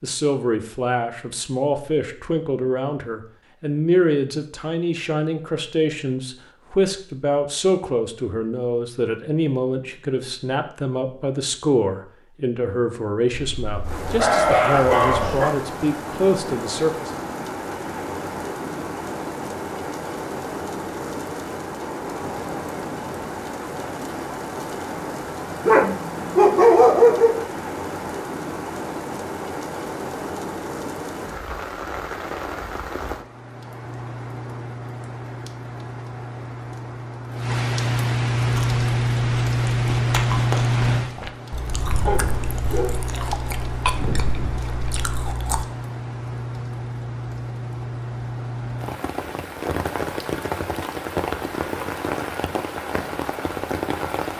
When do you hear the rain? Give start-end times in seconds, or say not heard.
13.8-54.3.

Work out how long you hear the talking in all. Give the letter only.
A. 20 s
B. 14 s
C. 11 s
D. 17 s
D.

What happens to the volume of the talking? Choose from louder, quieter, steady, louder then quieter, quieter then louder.
steady.